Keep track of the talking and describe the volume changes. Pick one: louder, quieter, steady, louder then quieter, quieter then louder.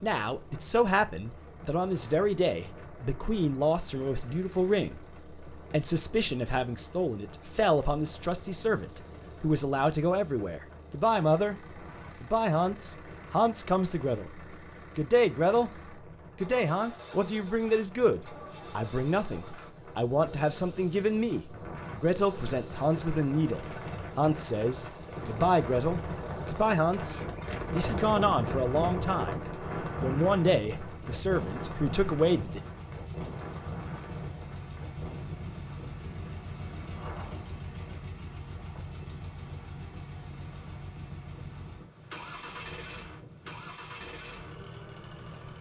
steady.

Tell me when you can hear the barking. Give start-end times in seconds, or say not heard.
not heard.